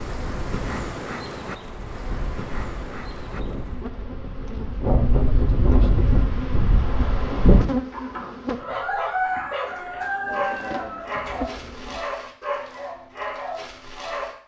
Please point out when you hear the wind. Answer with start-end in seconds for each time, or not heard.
0.1-7.7.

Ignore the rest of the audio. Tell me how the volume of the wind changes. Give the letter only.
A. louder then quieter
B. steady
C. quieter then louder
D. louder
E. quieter
D.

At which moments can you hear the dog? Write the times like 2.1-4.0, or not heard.
8.6-14.3.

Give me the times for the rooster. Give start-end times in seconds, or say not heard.
7.9-11.4.